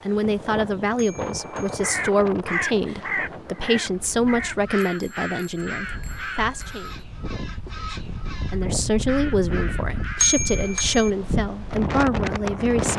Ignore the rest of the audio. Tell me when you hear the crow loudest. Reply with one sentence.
The loudest moment of the crow is at 3 seconds.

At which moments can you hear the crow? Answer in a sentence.
You can hear the crow from 1.6 to 10.8 s.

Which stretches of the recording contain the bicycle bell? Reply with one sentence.
The bicycle bell can be heard from 0.9 to 1.8 s, from 4.8 to 6.8 s and from 10.2 to 11.1 s.